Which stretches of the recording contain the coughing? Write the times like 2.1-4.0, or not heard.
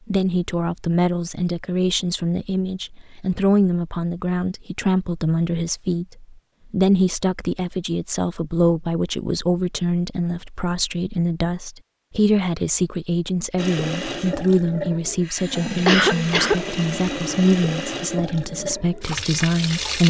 15.3-16.6.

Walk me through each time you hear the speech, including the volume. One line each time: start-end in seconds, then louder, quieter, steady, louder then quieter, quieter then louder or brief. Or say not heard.
0.1-20.0 steady.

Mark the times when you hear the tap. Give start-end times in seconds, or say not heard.
13.6-20.0.